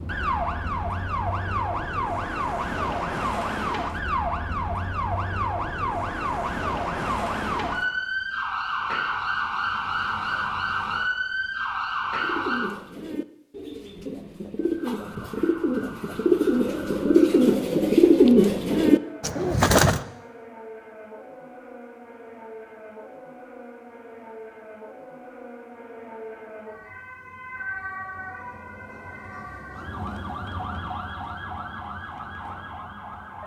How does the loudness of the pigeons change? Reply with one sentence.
The volume of the pigeons goes up.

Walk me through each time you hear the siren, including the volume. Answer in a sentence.
You can hear the siren from 0.0 to 12.8 s, at a steady volume; and from 14.8 to 33.4 s, getting louder.